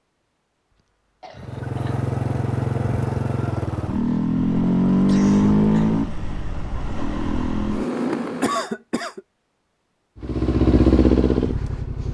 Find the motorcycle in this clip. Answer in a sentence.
You can hear the motorcycle from 1.4 to 8.7 s and from 10.2 to 12.0 s.